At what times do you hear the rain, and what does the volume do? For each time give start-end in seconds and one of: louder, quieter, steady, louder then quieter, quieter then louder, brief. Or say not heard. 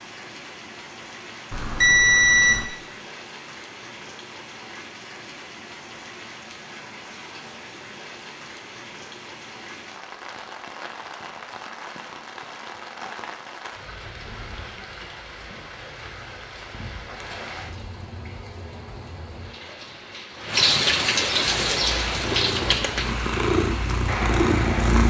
0.0-25.0 louder.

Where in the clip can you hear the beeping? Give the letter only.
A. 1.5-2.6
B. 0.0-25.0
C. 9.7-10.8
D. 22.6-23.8
A.